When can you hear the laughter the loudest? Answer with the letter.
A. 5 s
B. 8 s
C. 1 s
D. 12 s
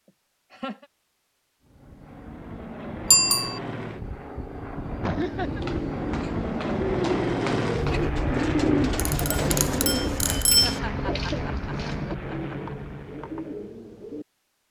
A.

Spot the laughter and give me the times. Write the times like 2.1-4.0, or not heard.
0.1-0.8, 5.0-5.7, 10.6-12.8.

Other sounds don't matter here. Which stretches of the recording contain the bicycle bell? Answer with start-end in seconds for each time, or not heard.
3.1-3.6, 8.9-10.8.